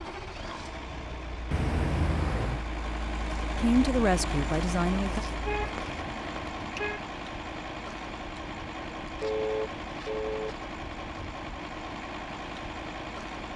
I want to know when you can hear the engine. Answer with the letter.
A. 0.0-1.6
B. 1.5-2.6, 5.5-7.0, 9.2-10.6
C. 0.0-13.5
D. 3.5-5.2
C.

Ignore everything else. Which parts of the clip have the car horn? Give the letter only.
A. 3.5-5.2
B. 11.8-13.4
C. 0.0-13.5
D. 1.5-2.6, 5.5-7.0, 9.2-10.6
D.